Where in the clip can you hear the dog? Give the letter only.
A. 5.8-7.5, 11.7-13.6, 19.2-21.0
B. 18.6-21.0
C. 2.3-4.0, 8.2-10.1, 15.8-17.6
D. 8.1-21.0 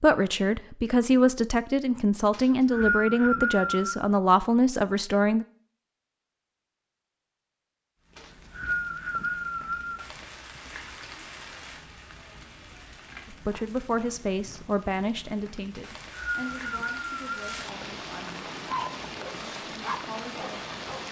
B.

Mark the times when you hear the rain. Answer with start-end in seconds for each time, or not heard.
8.1-21.0.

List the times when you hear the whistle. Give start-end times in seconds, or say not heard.
2.3-4.0, 8.2-10.1, 15.8-17.6.